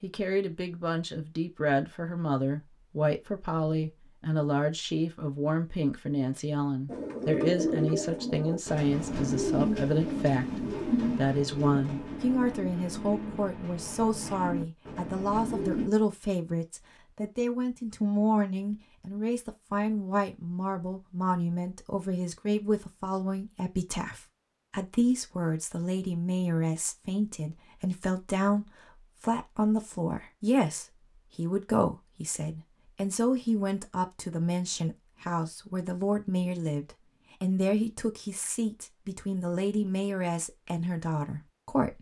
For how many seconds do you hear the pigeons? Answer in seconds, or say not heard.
9 s.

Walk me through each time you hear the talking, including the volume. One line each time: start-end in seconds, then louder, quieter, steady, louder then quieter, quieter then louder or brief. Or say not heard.
0.0-41.9 steady.